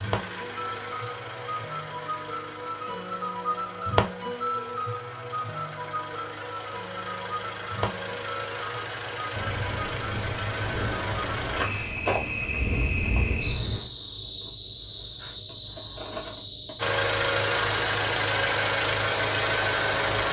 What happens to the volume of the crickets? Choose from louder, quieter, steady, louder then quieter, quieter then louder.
quieter.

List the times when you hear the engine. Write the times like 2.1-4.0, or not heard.
0.0-11.7, 16.8-20.2.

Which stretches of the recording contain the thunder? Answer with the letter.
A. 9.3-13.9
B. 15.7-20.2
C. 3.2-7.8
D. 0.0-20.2
A.